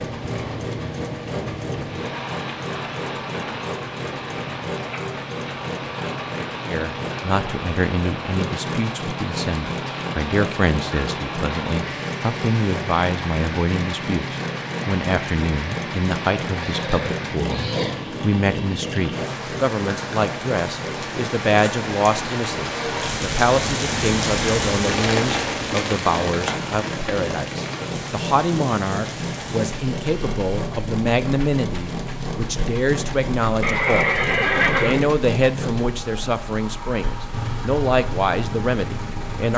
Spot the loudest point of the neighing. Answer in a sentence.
The loudest moment of the neighing is at 35 seconds.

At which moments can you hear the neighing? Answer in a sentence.
You can hear the neighing from 16.6 to 17.9 s and from 33.6 to 35.0 s.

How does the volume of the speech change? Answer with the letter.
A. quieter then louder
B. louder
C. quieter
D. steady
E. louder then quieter
D.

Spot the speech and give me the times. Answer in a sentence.
You can hear the speech from 6.7 to 34.2 s and from 34.8 to 39.5 s.